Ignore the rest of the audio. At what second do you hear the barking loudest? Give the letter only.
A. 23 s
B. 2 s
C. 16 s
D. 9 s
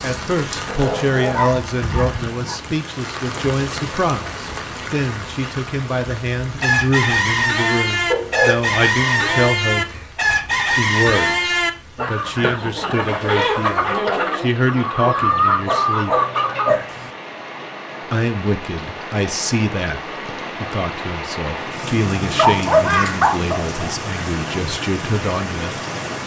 A.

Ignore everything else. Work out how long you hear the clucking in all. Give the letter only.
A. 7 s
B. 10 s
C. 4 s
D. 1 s
B.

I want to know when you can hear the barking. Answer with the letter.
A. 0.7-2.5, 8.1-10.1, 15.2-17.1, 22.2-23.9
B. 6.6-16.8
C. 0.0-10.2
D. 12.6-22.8
A.